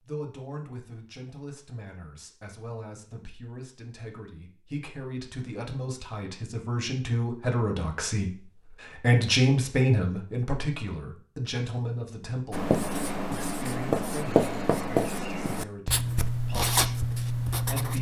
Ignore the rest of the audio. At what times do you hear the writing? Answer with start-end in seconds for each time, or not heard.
12.5-17.9.